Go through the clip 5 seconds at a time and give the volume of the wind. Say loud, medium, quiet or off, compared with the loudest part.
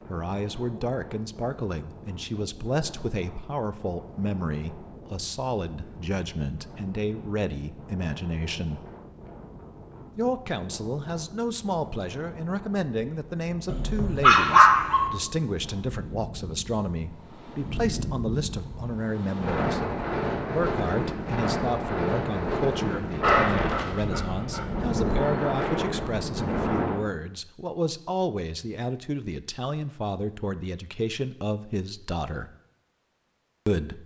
quiet, quiet, quiet, medium, loud, loud, off.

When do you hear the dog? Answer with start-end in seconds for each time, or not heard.
13.7-15.1, 23.2-25.4.